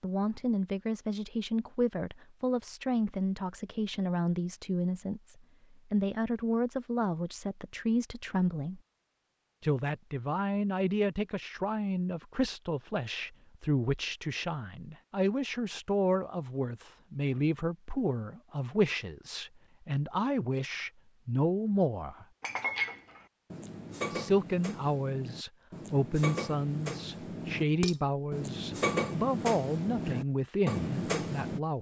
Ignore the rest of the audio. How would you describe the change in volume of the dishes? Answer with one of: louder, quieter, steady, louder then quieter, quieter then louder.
quieter then louder.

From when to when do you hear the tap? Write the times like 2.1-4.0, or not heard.
not heard.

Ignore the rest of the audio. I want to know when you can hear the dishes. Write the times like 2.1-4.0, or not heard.
22.4-31.6.